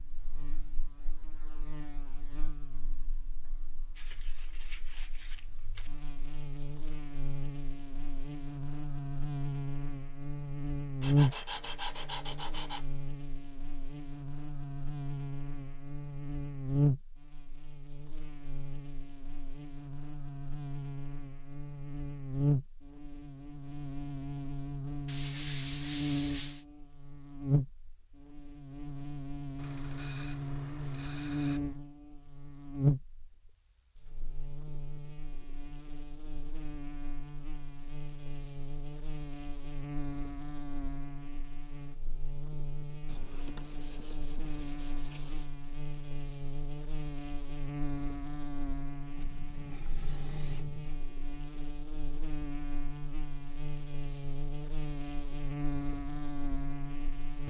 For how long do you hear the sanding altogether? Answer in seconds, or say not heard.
12 s.